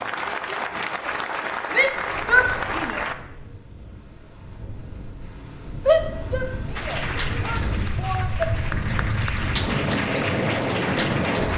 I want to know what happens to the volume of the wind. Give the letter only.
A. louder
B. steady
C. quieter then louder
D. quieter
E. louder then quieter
A.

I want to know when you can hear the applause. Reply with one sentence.
You can hear the applause from 0.0 to 3.1 s and from 6.8 to 11.5 s.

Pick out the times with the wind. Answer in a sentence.
The wind can be heard from 1.9 to 11.5 s.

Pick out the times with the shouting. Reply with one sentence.
You can hear the shouting from 1.7 to 3.1 s and from 5.8 to 8.5 s.